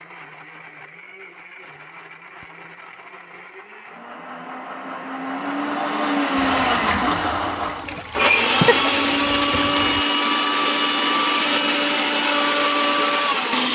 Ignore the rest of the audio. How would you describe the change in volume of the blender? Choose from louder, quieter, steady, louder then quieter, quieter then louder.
louder.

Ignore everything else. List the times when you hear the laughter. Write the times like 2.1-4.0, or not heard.
8.0-8.9.